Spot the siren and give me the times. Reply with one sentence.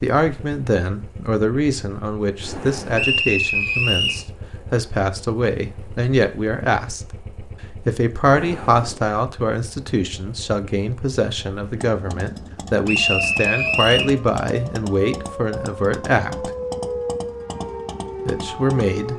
The siren can be heard from 12.9 to 19.1 s.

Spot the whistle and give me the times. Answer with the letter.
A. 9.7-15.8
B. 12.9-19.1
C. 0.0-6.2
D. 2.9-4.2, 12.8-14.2
D.